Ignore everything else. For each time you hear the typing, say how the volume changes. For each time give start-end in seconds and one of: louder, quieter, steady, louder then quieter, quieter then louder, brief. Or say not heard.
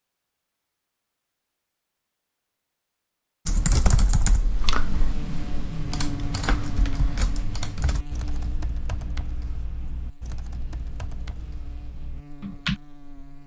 3.5-12.8 quieter.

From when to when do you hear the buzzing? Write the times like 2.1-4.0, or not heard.
4.8-13.4.